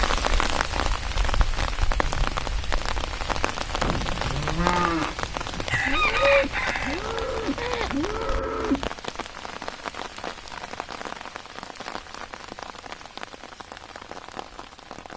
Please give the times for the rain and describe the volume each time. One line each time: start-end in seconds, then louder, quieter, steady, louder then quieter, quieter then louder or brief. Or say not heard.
0.0-15.1 quieter.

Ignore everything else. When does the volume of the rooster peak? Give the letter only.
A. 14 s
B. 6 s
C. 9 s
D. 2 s
B.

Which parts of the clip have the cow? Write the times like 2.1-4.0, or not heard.
3.8-8.9.